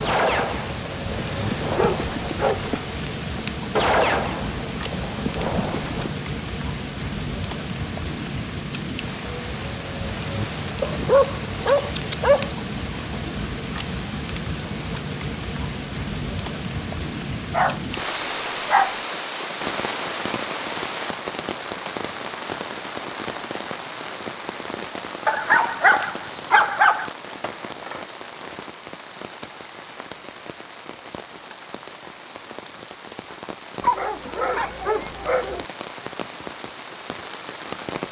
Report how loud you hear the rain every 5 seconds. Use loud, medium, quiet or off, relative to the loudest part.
loud, loud, loud, loud, loud, medium, medium, medium.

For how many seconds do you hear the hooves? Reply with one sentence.
The hooves can be heard for 6 seconds in total.